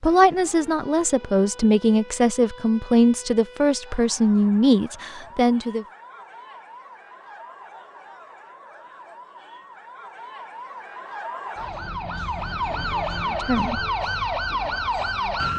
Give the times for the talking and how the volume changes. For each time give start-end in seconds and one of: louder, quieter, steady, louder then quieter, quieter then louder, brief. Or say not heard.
0.0-5.8 steady
13.2-13.8 brief.